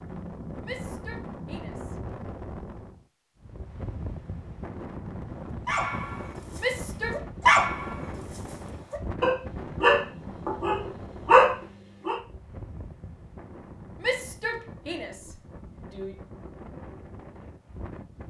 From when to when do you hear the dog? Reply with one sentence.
The dog can be heard from 5.7 to 12.2 s.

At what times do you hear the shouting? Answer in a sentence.
You can hear the shouting from 0.6 to 2.0 s, from 6.5 to 7.2 s and from 14.0 to 16.1 s.